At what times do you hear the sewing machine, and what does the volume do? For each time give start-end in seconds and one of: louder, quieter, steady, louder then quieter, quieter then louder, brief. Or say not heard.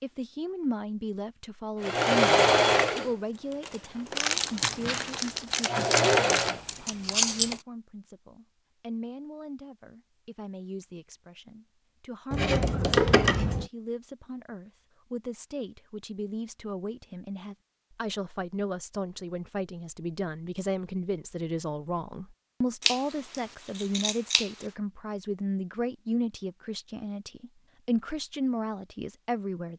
1.8-6.6 quieter then louder.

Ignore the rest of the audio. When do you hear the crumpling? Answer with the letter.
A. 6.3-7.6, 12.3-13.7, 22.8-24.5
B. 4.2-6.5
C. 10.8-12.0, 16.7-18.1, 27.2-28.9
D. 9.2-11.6
B.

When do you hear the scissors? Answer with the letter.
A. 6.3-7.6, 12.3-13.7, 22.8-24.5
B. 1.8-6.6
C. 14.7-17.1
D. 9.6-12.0
A.